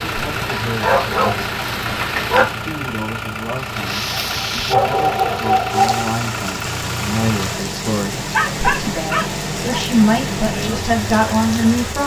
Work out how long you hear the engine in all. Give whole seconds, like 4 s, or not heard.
12 s.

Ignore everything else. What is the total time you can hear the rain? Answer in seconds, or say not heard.
12 s.